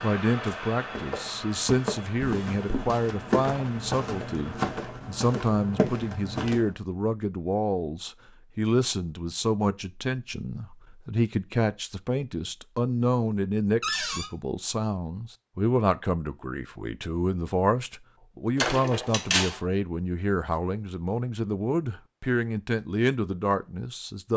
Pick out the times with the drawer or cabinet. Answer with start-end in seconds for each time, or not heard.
2.2-2.9, 13.8-14.3, 18.6-19.6.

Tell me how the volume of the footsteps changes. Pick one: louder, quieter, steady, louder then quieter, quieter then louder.
louder.